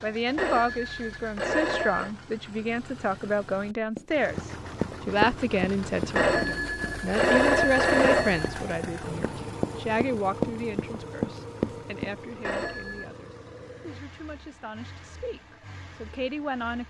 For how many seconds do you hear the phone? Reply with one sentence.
You can hear the phone for 5 seconds altogether.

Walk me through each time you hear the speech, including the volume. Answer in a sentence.
The speech can be heard from 0.0 to 16.8 s, getting quieter.